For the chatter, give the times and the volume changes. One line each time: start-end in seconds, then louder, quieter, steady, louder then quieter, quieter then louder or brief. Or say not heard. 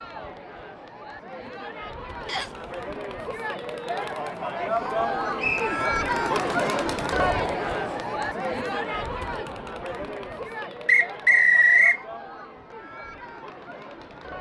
0.0-14.3 louder then quieter.